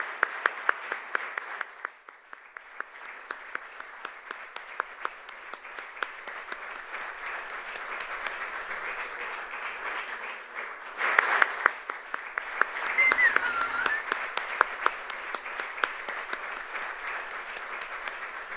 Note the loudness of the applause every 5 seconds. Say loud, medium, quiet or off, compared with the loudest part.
medium, medium, loud, medium.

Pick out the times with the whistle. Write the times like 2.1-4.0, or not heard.
12.9-14.1.